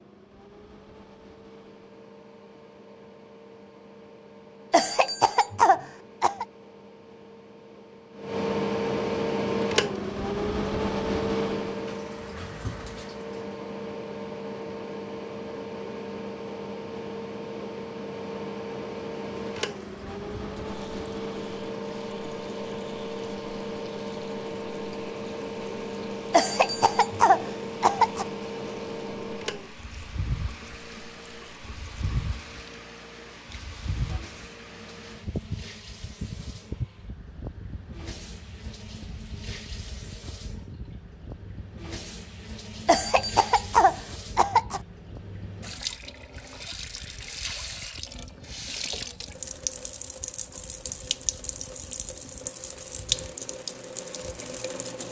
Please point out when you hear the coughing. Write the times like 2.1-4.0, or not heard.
4.7-6.5, 26.3-28.2, 42.9-44.8.